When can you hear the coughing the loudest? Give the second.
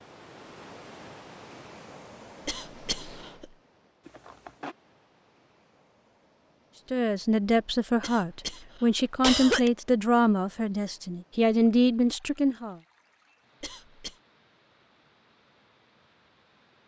9 s.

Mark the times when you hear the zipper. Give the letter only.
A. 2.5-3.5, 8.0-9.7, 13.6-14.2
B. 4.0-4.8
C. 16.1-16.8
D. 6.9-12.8
B.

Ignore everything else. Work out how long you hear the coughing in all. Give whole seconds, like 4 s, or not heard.
3 s.